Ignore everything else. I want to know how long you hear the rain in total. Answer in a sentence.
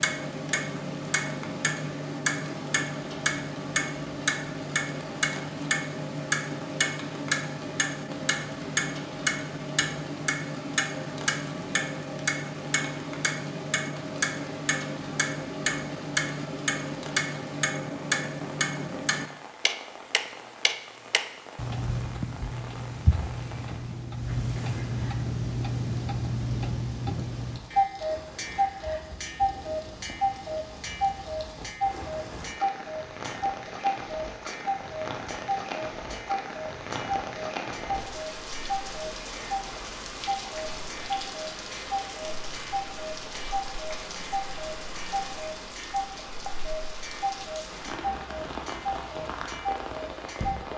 You can hear the rain for 51 seconds altogether.